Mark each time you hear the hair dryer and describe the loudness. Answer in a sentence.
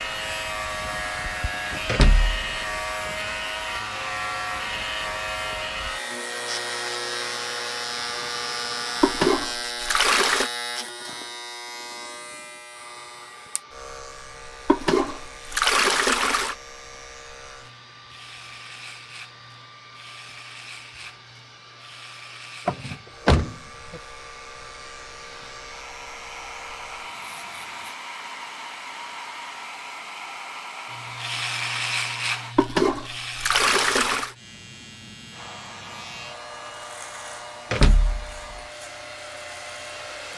The hair dryer can be heard from 0.0 to 9.2 s, at a steady volume; from 12.7 to 32.5 s, getting louder; and from 35.3 to 40.3 s, at a steady volume.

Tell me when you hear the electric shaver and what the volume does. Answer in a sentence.
The electric shaver can be heard from 0.0 to 27.9 s, getting quieter; and from 30.9 to 40.3 s, getting quieter.